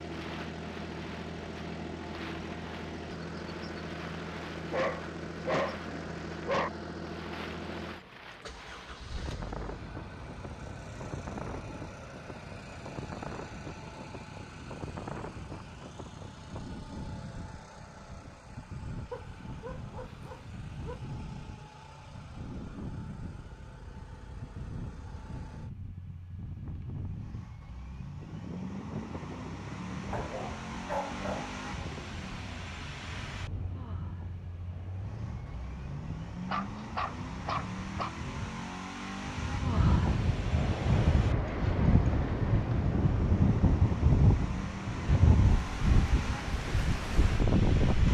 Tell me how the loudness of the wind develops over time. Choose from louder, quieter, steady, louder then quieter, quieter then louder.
louder.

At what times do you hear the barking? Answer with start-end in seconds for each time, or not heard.
4.7-6.7, 19.1-21.1, 30.1-31.6, 36.5-38.1.